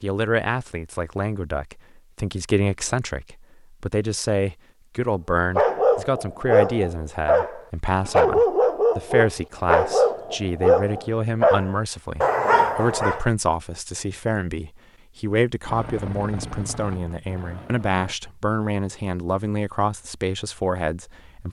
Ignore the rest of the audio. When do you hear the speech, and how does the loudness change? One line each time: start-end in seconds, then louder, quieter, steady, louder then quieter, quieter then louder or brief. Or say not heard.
0.0-21.4 steady.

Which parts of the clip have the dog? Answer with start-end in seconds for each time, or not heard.
5.5-13.2.